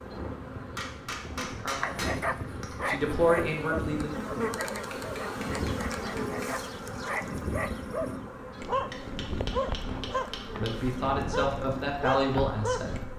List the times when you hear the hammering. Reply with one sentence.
You can hear the hammering from 0.8 to 2.8 s, from 4.7 to 6.4 s and from 8.9 to 10.8 s.